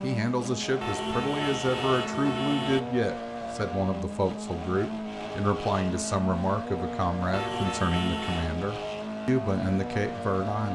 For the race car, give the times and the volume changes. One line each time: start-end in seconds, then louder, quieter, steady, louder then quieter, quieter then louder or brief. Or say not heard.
0.0-10.7 steady.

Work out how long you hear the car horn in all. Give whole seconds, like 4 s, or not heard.
3 s.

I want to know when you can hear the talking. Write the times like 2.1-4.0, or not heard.
0.0-10.7.